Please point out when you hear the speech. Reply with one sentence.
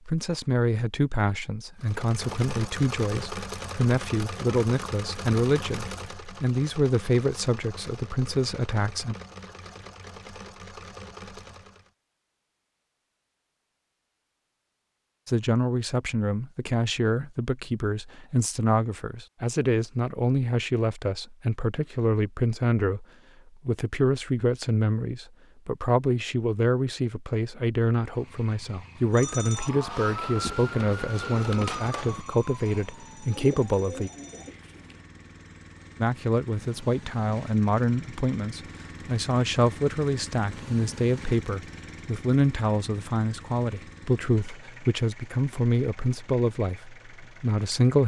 You can hear the speech from 0.1 to 9.2 s, from 15.2 to 23.1 s, from 23.6 to 34.1 s and from 36.0 to 48.0 s.